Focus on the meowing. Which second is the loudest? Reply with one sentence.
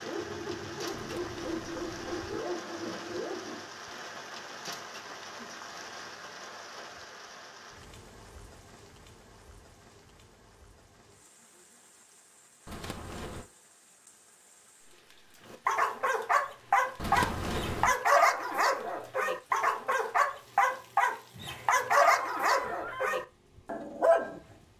The volume of the meowing peaks at 17 seconds.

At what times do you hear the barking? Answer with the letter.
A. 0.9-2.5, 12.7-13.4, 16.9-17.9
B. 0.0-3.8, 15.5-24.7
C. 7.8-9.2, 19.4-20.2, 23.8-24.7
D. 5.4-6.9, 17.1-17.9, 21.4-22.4
B.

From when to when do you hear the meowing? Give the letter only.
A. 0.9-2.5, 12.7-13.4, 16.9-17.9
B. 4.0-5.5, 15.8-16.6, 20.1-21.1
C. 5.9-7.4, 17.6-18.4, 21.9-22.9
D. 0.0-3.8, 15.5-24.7
A.